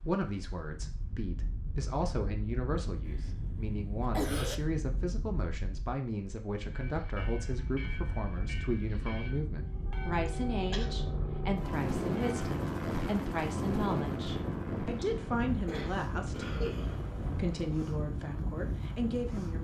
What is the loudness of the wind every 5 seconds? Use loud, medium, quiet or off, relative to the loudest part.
medium, medium, loud, loud.